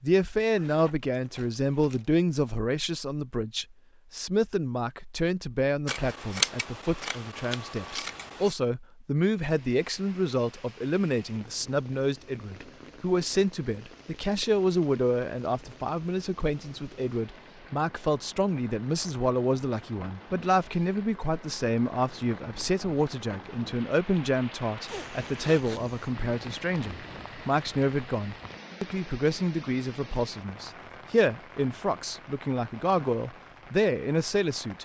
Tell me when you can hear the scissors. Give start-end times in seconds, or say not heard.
5.8-8.6.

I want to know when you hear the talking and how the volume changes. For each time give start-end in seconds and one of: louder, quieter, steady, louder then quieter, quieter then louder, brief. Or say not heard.
0.0-34.8 steady.